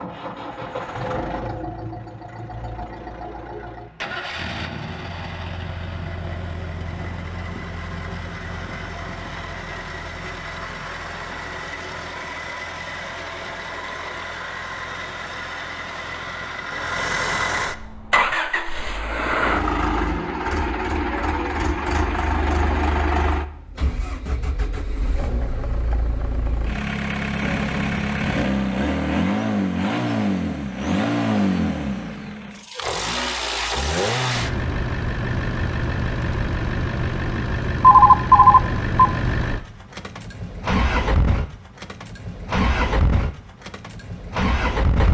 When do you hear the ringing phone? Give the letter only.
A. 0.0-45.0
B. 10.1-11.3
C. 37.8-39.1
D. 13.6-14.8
C.